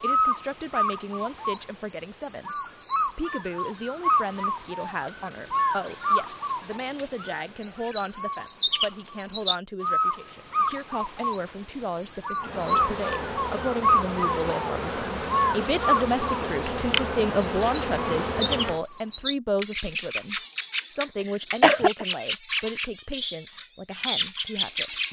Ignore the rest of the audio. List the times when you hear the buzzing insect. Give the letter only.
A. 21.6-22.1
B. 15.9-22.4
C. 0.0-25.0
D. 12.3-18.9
D.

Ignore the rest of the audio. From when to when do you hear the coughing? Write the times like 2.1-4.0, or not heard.
21.6-22.1.